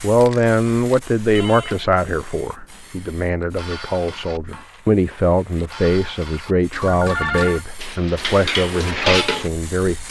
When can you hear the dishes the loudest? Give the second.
9 s.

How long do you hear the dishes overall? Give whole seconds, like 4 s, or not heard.
6 s.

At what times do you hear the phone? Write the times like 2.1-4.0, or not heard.
1.3-2.0, 6.8-7.7.